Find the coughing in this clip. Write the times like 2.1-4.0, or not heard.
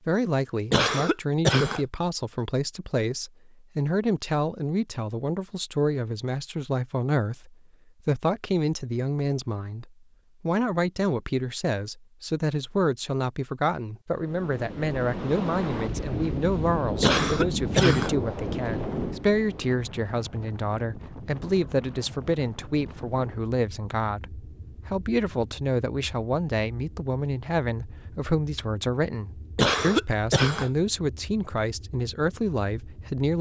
0.7-1.8, 17.0-18.1, 29.6-30.7.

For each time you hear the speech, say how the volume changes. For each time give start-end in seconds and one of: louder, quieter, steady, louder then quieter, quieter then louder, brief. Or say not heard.
0.1-33.3 steady.